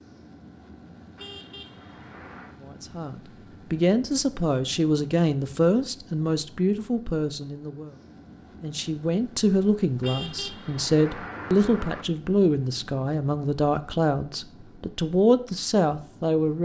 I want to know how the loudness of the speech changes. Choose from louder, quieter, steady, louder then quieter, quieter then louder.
steady.